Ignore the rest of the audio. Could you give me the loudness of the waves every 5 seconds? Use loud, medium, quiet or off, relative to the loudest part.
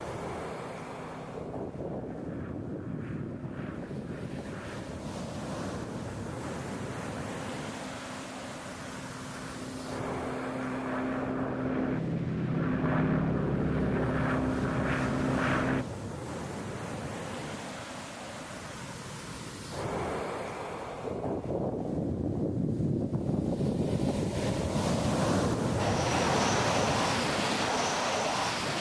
medium, medium, medium, medium, loud, loud.